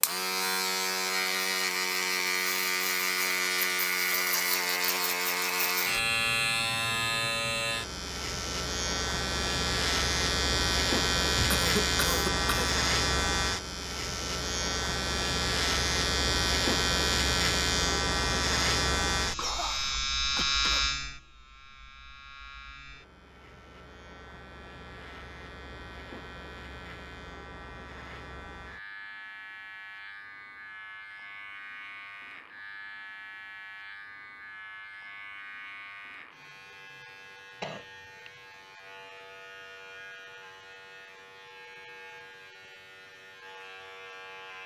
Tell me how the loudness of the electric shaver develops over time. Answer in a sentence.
The volume of the electric shaver goes down.